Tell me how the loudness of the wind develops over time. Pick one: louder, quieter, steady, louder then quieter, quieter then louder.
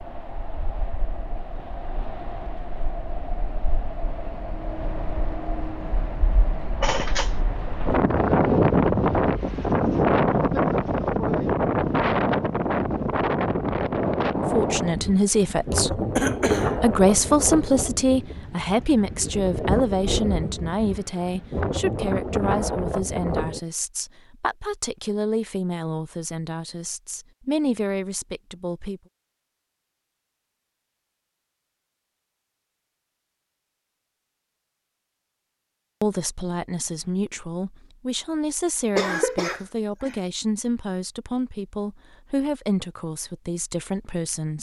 louder then quieter.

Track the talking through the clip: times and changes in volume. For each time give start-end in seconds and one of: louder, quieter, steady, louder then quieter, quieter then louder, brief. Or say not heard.
14.3-16.1 brief
16.8-29.0 quieter
36.0-44.5 steady.